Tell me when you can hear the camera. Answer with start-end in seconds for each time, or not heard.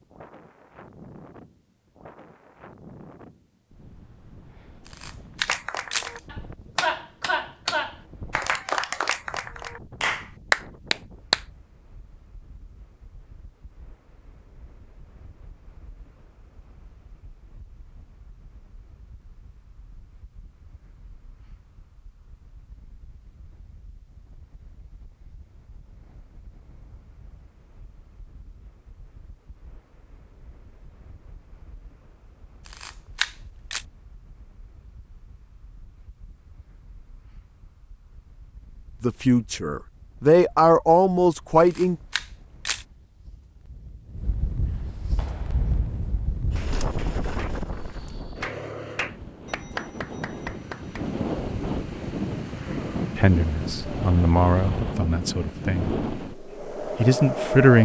4.8-6.2, 32.6-33.9, 41.6-42.9.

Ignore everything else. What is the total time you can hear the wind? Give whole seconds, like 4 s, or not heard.
58 s.